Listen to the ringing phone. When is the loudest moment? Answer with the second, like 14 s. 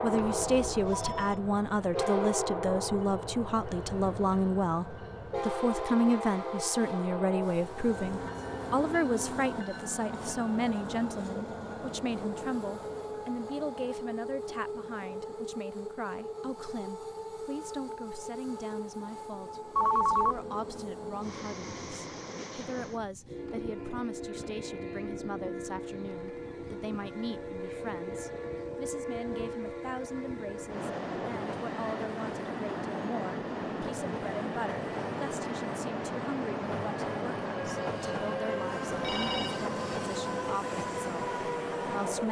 20 s.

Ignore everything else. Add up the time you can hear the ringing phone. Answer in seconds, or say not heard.
3 s.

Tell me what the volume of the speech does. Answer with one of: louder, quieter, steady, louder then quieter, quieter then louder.
quieter.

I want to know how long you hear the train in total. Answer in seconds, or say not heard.
42 s.